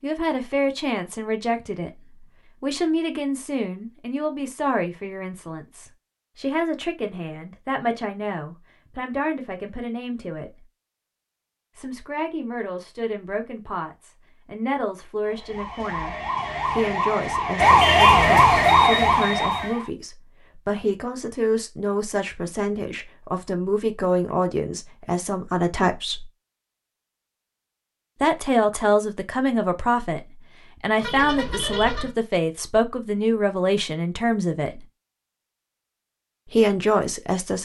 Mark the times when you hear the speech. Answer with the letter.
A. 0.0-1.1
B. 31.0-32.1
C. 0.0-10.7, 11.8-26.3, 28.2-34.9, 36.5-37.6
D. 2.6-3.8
C.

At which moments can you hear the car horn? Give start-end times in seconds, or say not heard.
31.0-32.1.